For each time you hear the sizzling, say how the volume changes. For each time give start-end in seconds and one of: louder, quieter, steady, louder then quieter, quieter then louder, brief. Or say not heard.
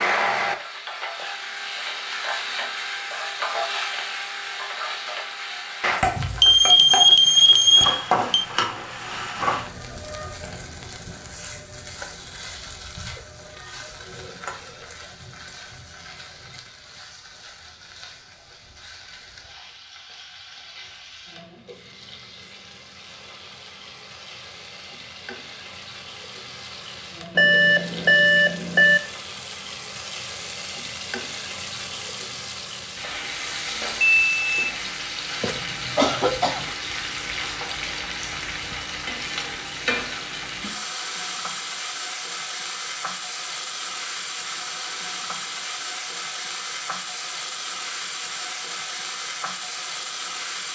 0.0-50.7 quieter then louder.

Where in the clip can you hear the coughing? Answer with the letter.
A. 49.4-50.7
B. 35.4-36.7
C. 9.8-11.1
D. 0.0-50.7
B.